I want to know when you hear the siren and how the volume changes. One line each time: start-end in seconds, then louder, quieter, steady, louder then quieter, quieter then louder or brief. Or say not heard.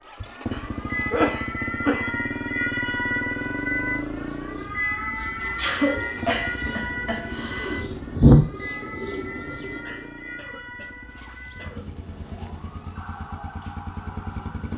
0.0-14.7 quieter.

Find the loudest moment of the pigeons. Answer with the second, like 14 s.
8 s.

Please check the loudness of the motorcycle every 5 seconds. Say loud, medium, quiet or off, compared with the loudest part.
loud, medium, medium.